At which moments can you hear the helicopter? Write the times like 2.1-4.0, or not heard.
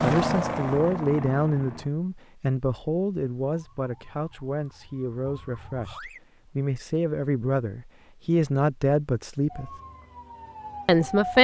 0.0-1.9.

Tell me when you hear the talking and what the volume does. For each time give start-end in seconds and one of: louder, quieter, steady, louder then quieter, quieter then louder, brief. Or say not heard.
0.0-9.7 quieter then louder
10.8-11.3 brief.